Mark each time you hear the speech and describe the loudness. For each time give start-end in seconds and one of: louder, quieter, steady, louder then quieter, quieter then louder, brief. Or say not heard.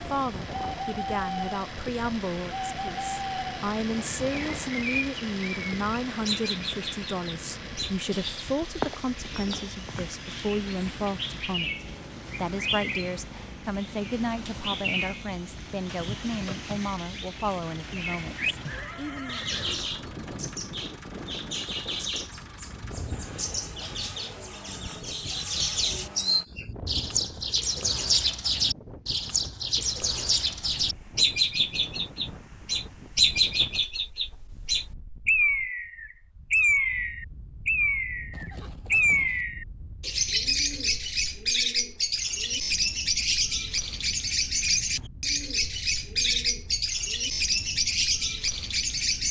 0.1-19.4 steady.